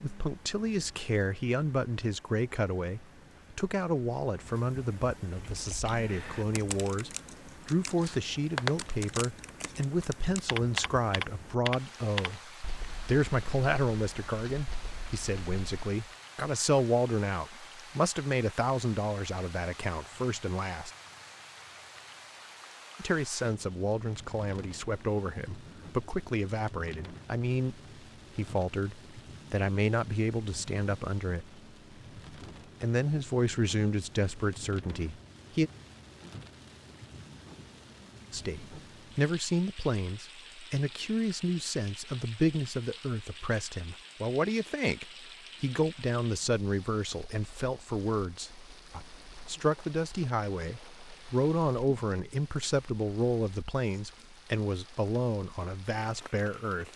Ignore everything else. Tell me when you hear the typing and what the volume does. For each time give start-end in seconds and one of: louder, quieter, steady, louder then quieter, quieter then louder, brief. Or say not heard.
5.3-15.9 louder then quieter.